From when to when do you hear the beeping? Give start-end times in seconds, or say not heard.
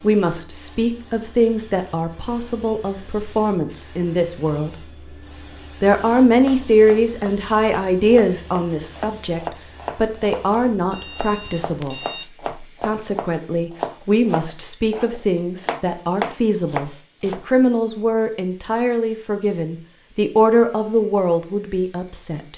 10.9-12.3.